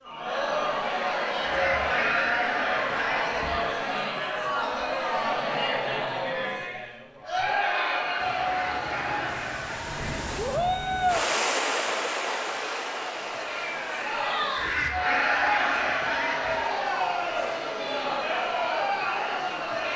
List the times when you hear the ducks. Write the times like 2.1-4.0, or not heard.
1.4-3.5, 8.4-10.2, 14.6-16.6.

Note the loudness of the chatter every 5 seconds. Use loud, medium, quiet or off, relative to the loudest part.
loud, loud, medium, loud.